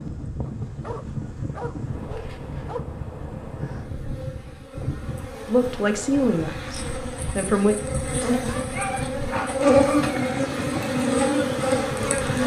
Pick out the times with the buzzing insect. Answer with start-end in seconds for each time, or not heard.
0.0-12.4.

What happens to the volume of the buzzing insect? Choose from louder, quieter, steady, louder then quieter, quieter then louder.
louder.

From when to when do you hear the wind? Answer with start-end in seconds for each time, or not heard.
0.0-12.4.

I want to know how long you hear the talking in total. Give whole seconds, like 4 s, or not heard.
2 s.